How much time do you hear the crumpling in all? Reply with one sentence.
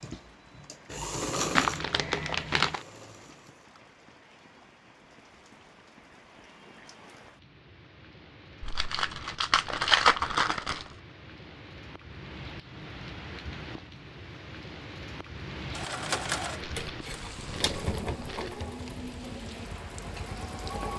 You can hear the crumpling for 6 seconds altogether.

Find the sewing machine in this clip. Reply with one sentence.
You can hear the sewing machine from 0.0 to 3.7 s and from 15.7 to 20.9 s.